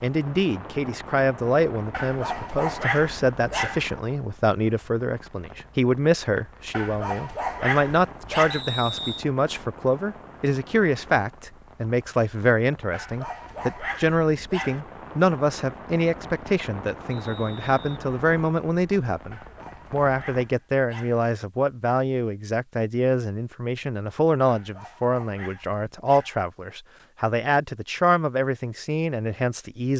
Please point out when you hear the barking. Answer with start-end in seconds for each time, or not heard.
1.9-3.9, 6.7-8.7, 12.9-14.8, 19.3-21.2, 24.4-26.4.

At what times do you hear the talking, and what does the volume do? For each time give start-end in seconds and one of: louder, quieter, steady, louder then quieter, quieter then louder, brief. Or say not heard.
0.0-29.9 steady.